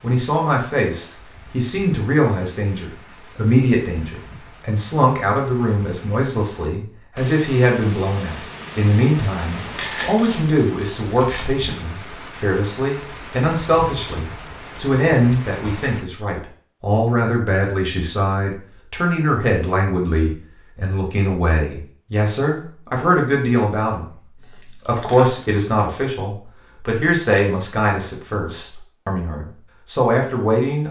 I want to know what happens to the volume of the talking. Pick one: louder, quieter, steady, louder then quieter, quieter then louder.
steady.